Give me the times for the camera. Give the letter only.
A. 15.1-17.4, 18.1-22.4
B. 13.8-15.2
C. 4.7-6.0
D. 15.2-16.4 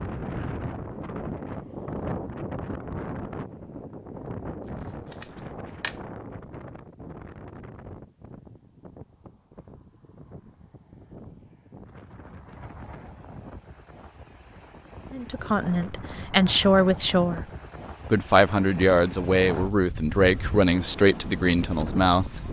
C.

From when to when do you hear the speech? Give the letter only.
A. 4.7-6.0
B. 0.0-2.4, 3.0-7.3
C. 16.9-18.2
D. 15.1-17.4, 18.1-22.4
D.